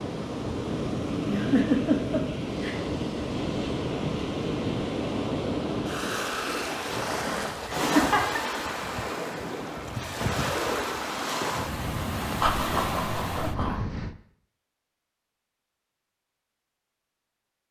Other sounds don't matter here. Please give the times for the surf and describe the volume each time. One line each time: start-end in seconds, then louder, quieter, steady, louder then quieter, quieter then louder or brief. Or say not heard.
0.0-14.2 steady.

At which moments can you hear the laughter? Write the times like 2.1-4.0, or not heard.
1.2-2.9, 7.8-8.4, 12.4-13.8.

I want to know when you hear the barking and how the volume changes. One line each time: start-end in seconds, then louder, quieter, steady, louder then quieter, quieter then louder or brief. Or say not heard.
not heard.